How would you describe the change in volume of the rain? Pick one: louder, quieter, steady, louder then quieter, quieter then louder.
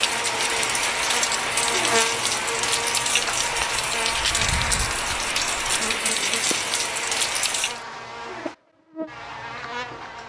steady.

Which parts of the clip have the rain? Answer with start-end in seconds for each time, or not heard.
0.0-7.8.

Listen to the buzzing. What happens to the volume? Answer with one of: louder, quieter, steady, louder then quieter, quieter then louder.
quieter.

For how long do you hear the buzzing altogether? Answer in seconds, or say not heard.
10 s.